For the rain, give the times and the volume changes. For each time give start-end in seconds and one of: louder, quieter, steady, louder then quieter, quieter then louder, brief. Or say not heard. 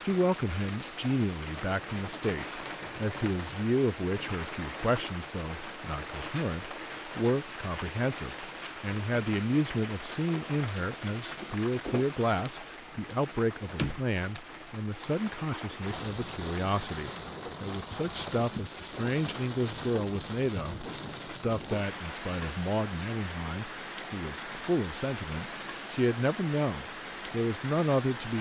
0.0-28.3 steady.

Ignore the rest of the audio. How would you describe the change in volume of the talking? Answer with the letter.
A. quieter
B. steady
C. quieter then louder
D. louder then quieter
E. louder
B.